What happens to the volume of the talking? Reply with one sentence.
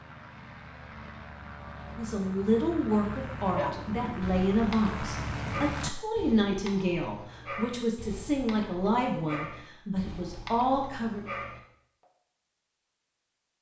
The volume of the talking stays about the same.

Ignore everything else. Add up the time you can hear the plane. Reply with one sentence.
You can hear the plane for 6 seconds altogether.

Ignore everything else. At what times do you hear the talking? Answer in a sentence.
You can hear the talking from 1.9 to 11.2 s.